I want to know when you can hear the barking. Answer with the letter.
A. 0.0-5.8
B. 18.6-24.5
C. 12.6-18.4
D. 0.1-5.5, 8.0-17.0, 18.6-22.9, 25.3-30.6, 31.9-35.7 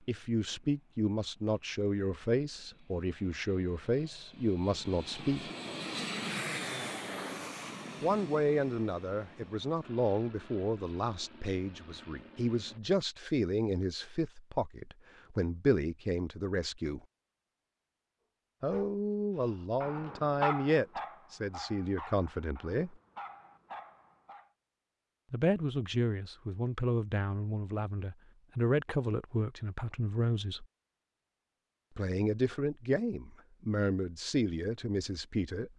B.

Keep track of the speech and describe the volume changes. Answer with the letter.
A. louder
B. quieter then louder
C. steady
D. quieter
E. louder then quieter
C.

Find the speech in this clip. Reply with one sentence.
The speech can be heard from 0.1 to 5.5 s, from 8.0 to 17.0 s, from 18.6 to 22.9 s, from 25.3 to 30.6 s and from 31.9 to 35.7 s.